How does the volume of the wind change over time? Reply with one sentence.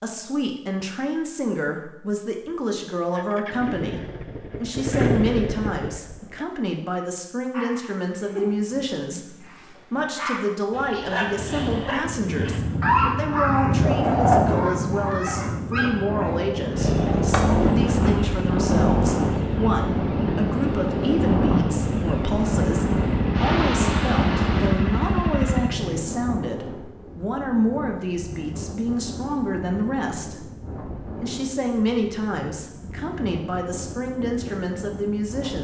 The volume of the wind goes down.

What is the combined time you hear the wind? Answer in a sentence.
You can hear the wind for 24 seconds altogether.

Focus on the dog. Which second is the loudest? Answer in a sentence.
The volume of the dog peaks at 13 seconds.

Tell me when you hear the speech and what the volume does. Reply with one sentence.
You can hear the speech from 0.0 to 35.5 s, at a steady volume.